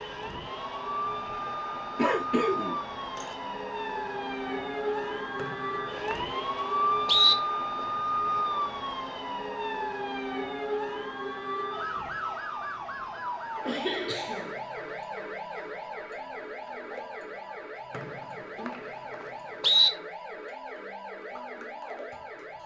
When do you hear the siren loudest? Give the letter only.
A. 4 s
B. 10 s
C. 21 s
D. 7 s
D.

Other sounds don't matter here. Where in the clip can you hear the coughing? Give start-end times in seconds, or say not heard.
1.9-3.4, 13.7-14.6.